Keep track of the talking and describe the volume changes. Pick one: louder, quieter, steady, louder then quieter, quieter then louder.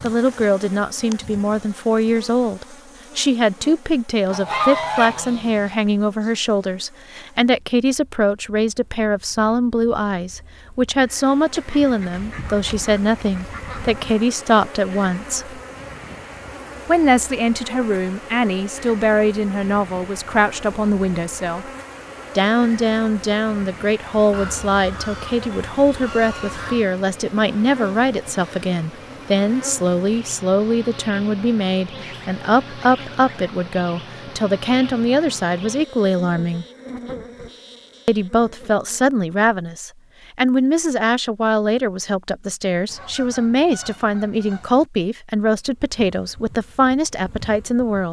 steady.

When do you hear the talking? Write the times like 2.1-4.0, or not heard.
0.0-15.6, 16.9-21.7, 22.4-36.6, 38.0-48.0.